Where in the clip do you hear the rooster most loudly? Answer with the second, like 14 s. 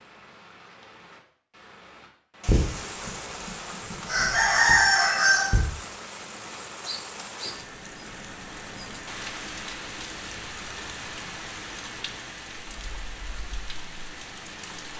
5 s.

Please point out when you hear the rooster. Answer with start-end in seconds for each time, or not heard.
2.4-5.6.